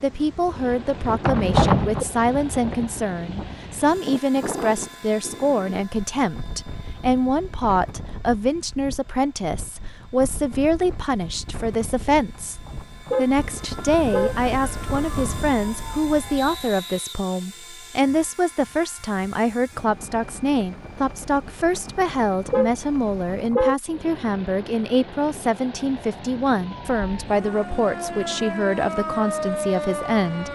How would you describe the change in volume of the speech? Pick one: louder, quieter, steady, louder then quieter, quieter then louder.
steady.